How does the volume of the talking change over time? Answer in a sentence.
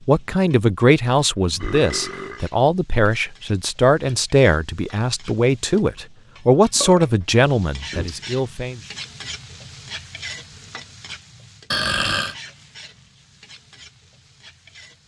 The loudness of the talking stays about the same.